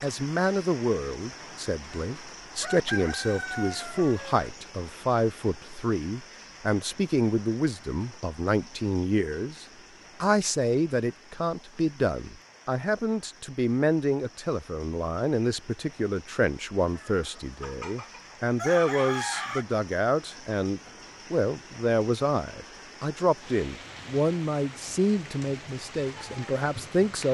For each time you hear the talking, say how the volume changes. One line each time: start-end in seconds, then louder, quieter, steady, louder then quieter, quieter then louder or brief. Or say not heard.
0.0-27.2 steady.